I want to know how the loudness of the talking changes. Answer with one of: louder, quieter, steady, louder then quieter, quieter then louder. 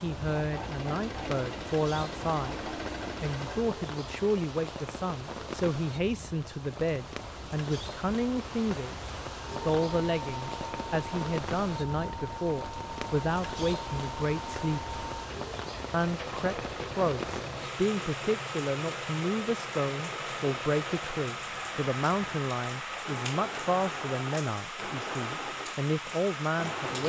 steady.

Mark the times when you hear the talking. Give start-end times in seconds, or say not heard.
0.0-14.9, 15.9-27.0.